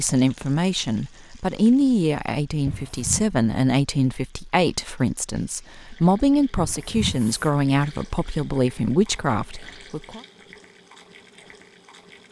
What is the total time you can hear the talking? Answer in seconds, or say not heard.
10 s.